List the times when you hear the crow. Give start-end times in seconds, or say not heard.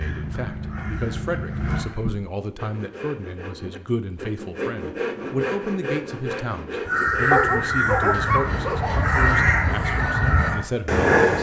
0.0-1.8, 6.8-11.3.